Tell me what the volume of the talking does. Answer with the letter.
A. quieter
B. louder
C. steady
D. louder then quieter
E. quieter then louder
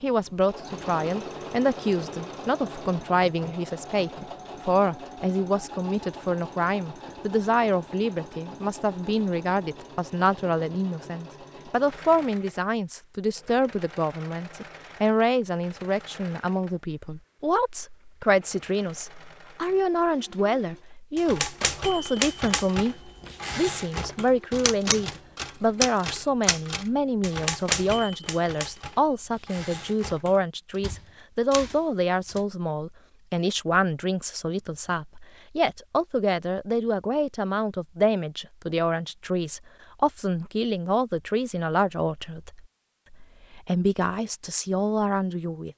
C.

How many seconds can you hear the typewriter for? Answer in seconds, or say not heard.
11 s.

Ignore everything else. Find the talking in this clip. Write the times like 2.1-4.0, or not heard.
0.0-45.7.